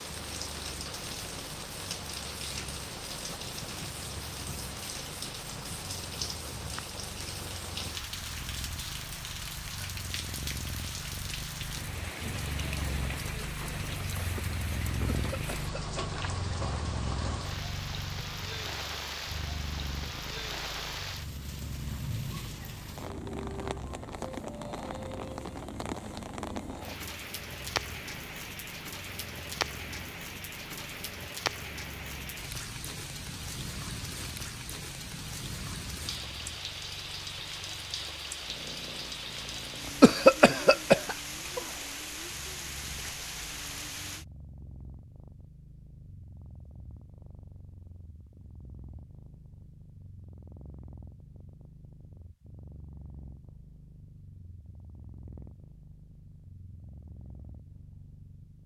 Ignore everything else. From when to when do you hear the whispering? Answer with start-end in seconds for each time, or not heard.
not heard.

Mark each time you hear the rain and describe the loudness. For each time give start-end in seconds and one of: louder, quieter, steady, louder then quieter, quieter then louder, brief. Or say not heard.
0.0-44.2 steady.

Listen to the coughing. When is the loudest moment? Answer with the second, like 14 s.
40 s.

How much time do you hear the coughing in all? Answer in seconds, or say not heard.
2 s.